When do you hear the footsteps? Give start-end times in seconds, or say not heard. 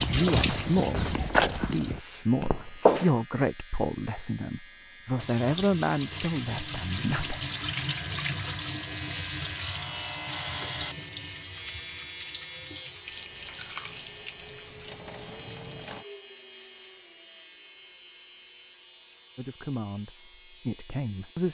0.0-3.1.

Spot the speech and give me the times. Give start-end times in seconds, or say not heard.
0.1-7.4, 19.4-21.4.